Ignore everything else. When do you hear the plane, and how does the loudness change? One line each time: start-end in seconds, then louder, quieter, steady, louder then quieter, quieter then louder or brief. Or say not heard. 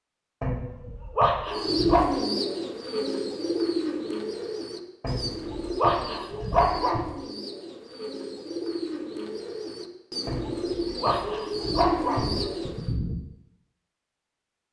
not heard.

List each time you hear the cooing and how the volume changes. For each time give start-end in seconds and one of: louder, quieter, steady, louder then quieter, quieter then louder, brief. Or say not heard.
1.4-12.9 quieter then louder.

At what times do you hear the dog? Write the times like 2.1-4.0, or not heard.
0.4-2.1, 5.0-7.0, 10.2-13.2.